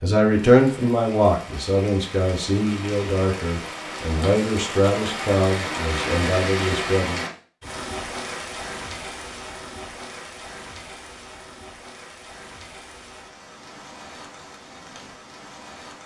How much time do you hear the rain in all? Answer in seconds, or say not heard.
16 s.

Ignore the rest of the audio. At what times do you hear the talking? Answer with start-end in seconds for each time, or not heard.
0.0-7.2.